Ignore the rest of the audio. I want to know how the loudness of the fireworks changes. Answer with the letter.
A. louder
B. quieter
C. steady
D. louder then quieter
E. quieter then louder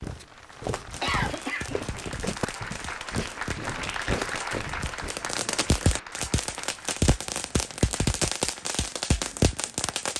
A.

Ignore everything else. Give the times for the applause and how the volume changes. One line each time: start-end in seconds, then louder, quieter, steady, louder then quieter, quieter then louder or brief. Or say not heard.
0.0-10.1 louder then quieter.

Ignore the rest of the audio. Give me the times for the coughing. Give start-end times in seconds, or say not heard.
1.0-2.1.